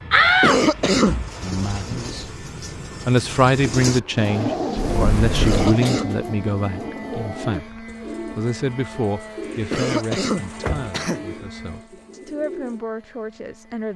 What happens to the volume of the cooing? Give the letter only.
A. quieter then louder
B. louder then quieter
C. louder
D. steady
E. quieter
B.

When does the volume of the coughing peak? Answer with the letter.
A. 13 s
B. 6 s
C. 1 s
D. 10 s
C.